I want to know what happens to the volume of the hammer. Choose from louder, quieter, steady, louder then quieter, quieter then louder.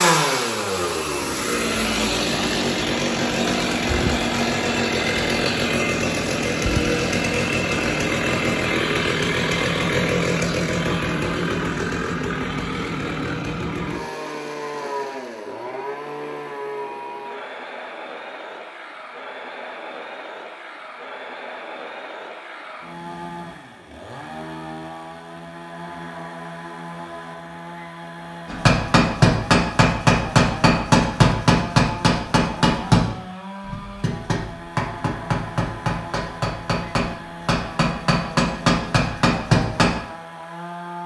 quieter then louder.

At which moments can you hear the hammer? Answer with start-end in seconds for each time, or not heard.
28.5-40.0.